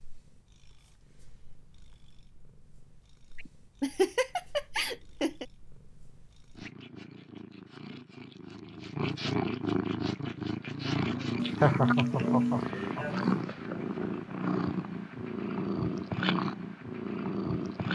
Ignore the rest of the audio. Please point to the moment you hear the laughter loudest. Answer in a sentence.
The volume of the laughter peaks at 12 seconds.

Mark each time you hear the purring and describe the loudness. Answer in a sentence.
The purring can be heard from 0.0 to 17.9 s, getting louder.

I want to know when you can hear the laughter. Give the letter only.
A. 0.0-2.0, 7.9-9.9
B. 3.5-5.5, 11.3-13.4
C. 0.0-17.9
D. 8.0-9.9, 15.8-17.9
B.